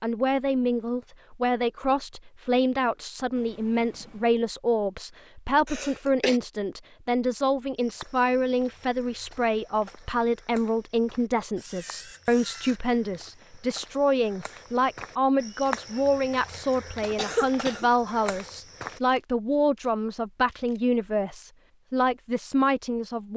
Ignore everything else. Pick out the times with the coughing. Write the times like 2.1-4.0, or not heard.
5.7-6.4, 17.1-17.9.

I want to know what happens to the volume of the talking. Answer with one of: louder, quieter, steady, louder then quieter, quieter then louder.
steady.